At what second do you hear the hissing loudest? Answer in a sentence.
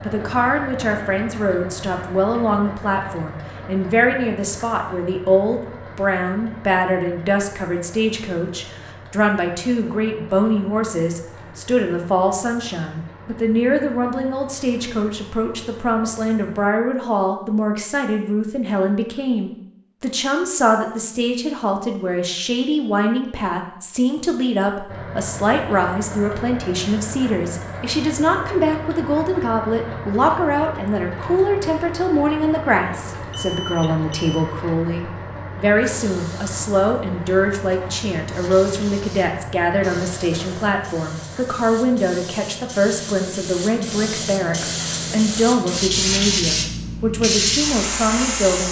The volume of the hissing peaks at 46 seconds.